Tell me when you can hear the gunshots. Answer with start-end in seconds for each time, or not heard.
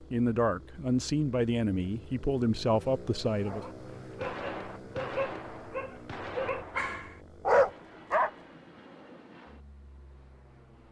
4.2-7.0.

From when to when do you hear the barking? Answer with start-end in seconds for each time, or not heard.
3.4-8.4.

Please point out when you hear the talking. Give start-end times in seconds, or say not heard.
0.1-3.6.